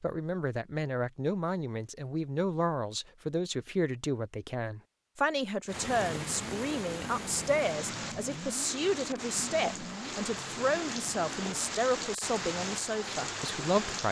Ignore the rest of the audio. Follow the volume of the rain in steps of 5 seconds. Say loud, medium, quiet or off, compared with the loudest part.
off, loud, loud.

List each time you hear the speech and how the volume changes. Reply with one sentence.
You can hear the speech from 0.0 to 14.0 s, at a steady volume.